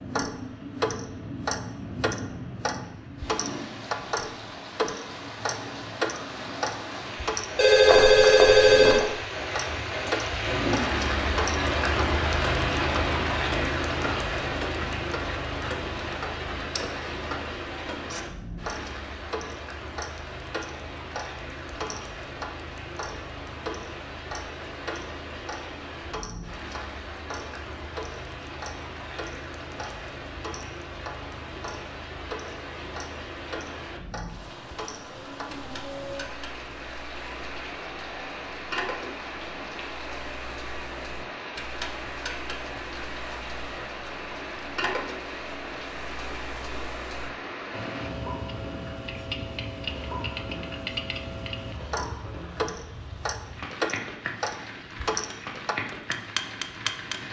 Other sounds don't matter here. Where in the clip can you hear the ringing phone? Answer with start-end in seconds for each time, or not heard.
7.5-9.1.